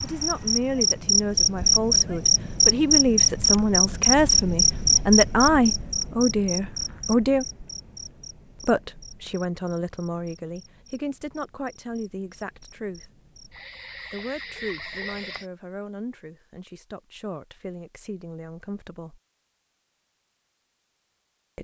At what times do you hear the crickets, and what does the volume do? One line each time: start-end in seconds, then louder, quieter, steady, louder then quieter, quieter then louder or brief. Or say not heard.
0.0-15.5 quieter then louder.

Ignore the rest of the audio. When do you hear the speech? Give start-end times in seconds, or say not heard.
0.0-7.5, 8.6-13.2, 14.1-19.2.